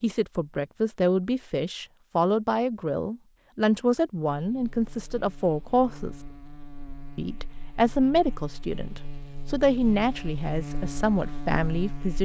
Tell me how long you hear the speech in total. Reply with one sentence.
You can hear the speech for 11 seconds altogether.